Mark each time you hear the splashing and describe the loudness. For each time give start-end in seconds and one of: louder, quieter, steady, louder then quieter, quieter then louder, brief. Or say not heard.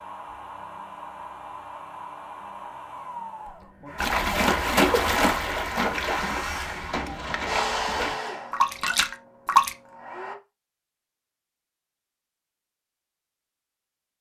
4.0-9.8 quieter then louder.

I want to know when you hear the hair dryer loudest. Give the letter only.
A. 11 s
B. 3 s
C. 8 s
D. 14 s
C.